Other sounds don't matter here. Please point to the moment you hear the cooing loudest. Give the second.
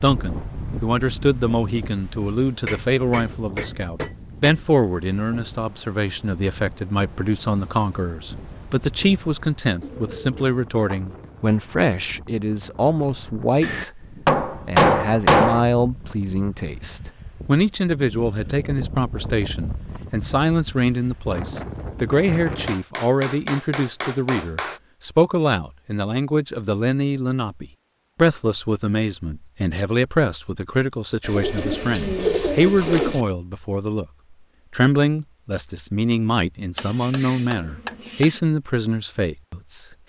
32 s.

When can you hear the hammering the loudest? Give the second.
15 s.